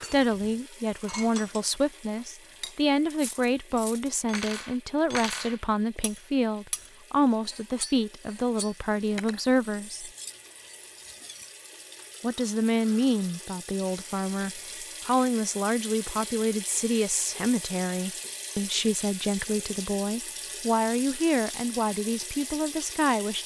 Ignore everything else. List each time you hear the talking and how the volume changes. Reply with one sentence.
The talking can be heard from 0.0 to 10.1 s, at a steady volume; and from 12.2 to 23.4 s, at a steady volume.